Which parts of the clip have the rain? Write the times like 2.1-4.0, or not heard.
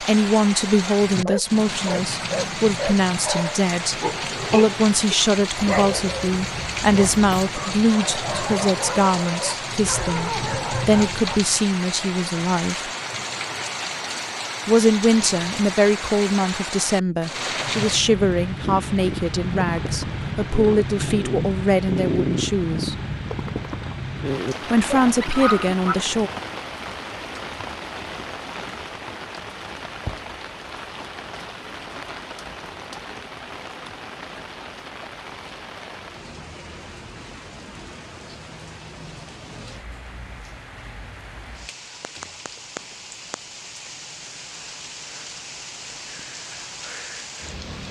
0.0-47.8.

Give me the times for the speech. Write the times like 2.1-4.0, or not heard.
0.0-12.8, 14.7-22.9, 24.7-26.3.